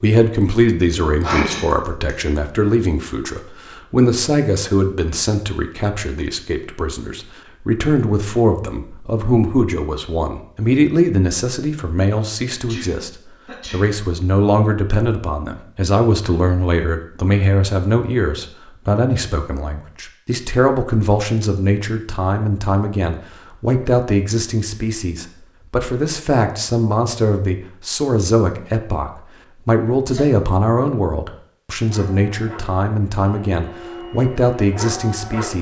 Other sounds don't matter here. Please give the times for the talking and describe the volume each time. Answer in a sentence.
The talking can be heard from 0.0 to 35.5 s, at a steady volume.